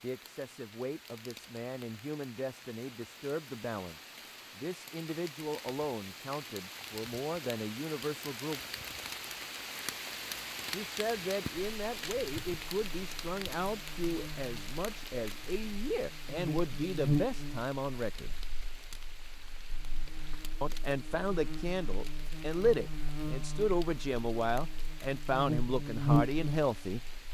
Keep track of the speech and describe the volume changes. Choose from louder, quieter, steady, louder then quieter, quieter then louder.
louder.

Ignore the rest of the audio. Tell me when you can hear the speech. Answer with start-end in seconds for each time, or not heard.
0.0-8.6, 10.7-18.4, 20.6-27.0.